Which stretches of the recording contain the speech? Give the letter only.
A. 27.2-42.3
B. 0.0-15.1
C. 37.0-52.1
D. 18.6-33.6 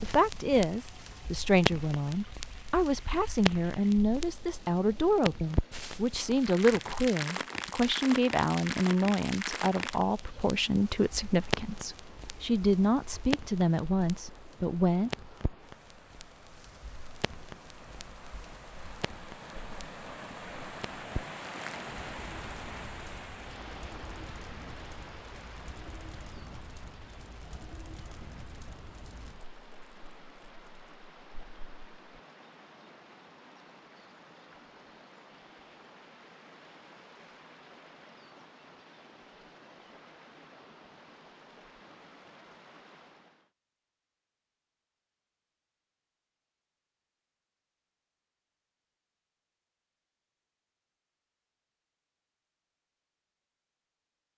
B.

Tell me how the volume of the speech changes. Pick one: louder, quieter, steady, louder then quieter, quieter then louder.
steady.